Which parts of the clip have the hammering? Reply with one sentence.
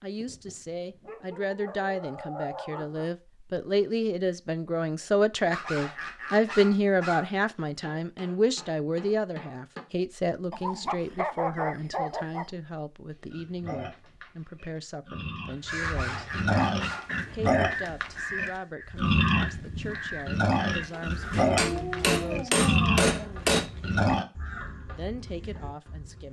You can hear the hammering from 7.8 to 9.8 s and from 20.9 to 23.7 s.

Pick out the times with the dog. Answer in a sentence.
The dog can be heard from 0.2 to 3.1 s, from 5.5 to 7.3 s, from 10.5 to 12.4 s, from 15.8 to 17.1 s and from 21.6 to 23.5 s.